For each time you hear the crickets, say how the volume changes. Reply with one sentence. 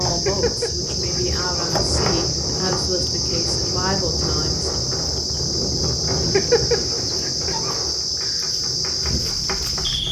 You can hear the crickets from 0.0 to 10.0 s, at a steady volume.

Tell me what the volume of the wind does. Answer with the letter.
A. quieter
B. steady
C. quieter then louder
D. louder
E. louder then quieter
A.